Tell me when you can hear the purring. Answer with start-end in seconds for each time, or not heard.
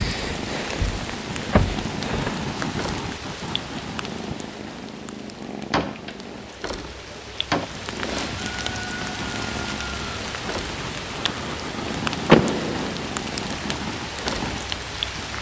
0.0-15.3.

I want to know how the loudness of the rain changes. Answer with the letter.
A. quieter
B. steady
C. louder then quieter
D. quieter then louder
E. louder
D.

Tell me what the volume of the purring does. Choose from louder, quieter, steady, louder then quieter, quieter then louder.
steady.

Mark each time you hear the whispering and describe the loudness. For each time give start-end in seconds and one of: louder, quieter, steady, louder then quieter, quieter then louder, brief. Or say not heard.
not heard.